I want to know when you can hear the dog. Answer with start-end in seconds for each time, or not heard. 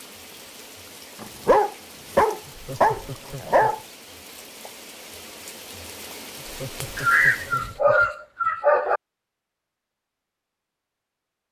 1.2-3.8, 7.0-9.0.